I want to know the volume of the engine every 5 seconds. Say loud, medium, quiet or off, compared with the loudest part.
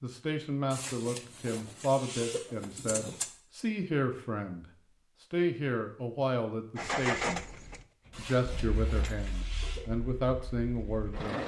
off, loud, medium.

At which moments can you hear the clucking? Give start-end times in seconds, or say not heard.
0.7-3.2, 8.1-9.8.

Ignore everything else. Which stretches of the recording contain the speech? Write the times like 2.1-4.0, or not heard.
0.0-7.4, 8.2-11.4.